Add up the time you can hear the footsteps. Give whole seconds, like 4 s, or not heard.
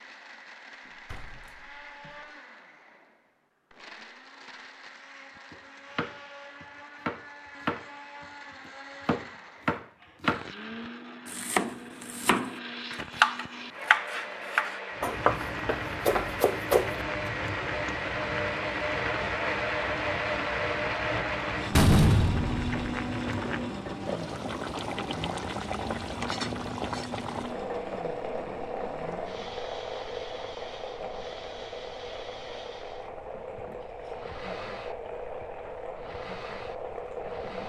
not heard.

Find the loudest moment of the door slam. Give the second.
22 s.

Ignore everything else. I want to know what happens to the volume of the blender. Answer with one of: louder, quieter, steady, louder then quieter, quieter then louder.
louder then quieter.